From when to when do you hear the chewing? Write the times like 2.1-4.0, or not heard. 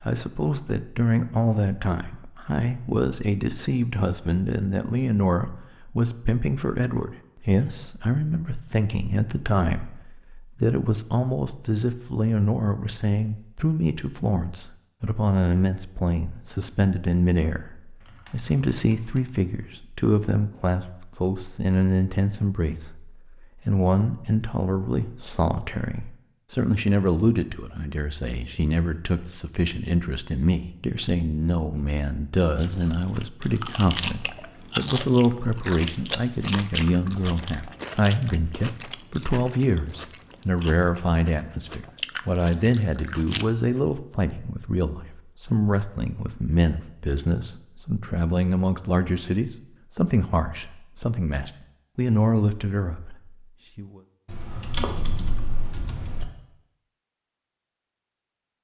32.5-43.8.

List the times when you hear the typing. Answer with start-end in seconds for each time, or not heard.
18.0-19.7, 54.2-56.2.